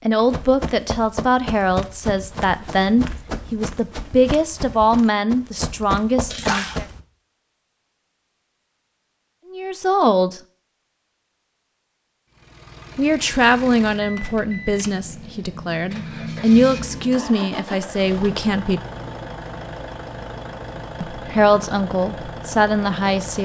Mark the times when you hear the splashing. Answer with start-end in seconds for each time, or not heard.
6.3-6.8.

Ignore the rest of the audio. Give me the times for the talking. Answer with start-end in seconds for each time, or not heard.
0.1-6.8, 9.5-10.4, 12.9-18.8, 21.1-23.3.